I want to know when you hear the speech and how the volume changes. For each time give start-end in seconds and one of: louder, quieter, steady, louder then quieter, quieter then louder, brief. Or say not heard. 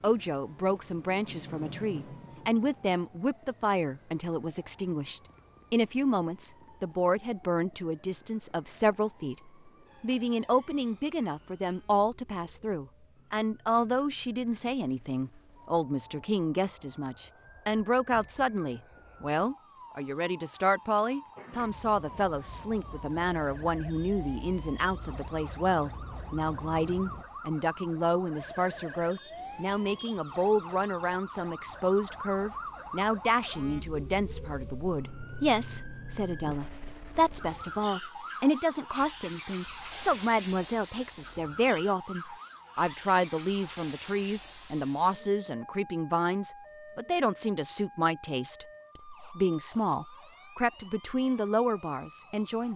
0.0-52.7 steady.